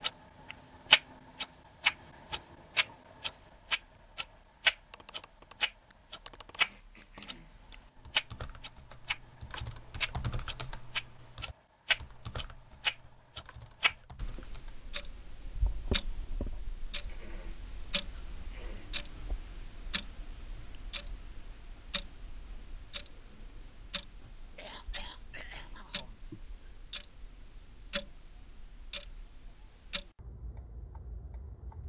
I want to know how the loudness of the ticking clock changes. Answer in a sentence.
The loudness of the ticking clock goes down.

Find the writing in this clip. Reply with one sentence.
You can't hear the writing here.